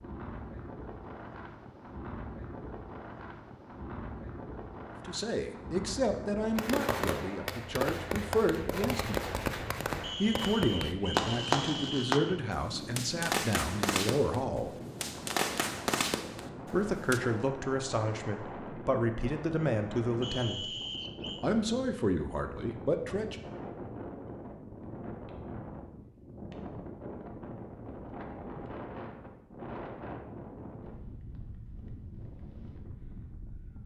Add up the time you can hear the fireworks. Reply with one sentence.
You can hear the fireworks for 11 seconds altogether.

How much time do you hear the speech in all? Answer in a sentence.
The speech can be heard for 15 seconds in total.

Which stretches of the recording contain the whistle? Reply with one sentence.
You can hear the whistle from 10.0 to 12.4 s and from 20.2 to 21.5 s.